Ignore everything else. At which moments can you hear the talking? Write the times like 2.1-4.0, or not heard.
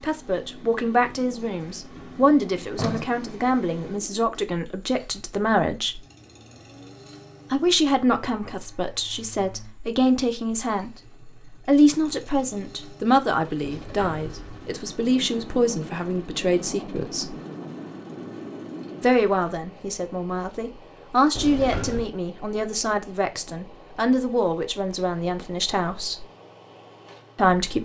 0.0-6.0, 7.5-17.4, 19.0-26.2, 27.4-27.8.